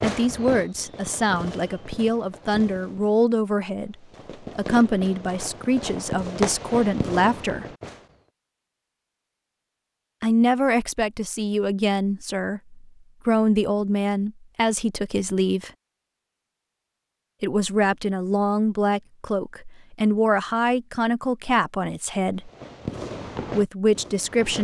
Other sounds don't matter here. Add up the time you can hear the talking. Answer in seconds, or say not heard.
19 s.